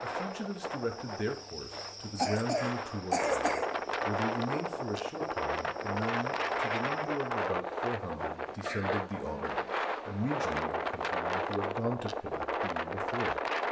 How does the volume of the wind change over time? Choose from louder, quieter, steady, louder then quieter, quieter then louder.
louder.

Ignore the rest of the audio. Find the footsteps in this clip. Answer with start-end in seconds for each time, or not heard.
not heard.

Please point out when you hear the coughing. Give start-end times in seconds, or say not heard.
2.1-3.6, 8.6-9.8.